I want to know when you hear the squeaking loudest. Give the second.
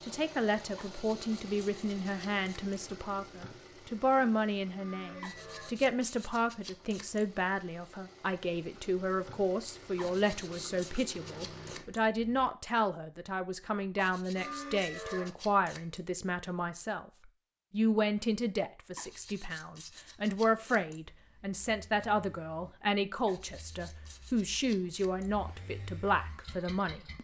15 s.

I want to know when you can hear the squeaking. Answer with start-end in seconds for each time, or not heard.
4.8-5.8, 14.3-15.3.